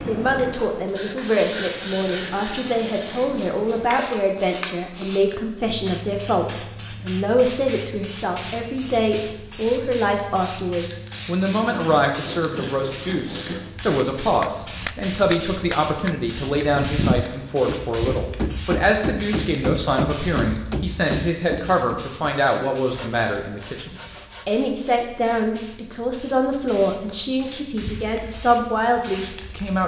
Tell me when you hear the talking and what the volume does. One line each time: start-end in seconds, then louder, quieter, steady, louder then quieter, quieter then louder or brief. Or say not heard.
0.1-29.8 steady.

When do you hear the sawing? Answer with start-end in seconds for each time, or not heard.
0.9-2.6, 11.5-13.7, 22.9-24.6.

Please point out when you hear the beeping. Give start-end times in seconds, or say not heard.
not heard.